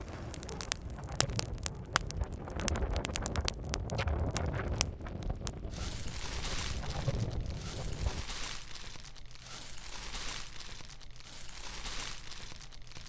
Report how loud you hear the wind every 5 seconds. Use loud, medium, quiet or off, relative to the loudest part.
loud, loud, off.